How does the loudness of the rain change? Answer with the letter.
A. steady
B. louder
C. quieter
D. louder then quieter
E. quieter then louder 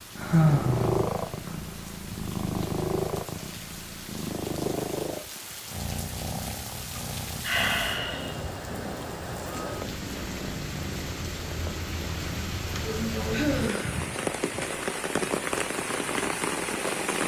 B.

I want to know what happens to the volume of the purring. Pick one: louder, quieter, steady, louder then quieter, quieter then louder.
quieter.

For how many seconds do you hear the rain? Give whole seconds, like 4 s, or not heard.
17 s.